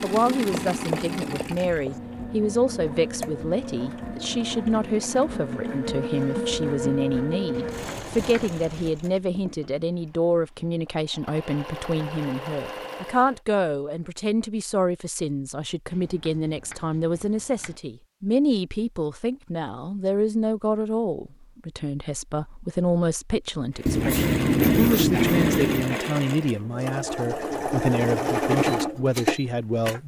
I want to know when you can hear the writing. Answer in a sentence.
The writing can be heard from 0.7 to 2.0 s, from 7.5 to 8.9 s, from 15.9 to 17.8 s and from 23.9 to 25.9 s.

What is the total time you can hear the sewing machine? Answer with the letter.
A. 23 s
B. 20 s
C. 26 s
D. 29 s
B.